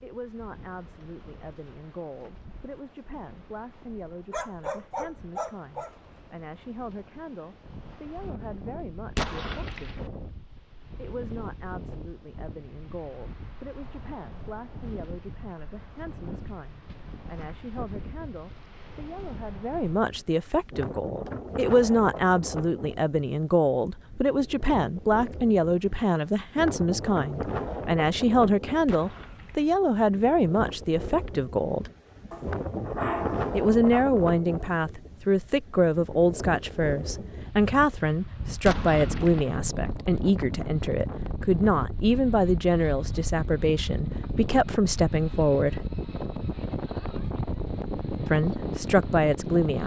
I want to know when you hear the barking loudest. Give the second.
33 s.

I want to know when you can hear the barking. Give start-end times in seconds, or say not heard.
4.3-6.1, 32.3-34.0.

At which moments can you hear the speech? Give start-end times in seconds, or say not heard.
0.0-10.2, 10.9-31.9, 33.5-45.8, 48.2-49.8.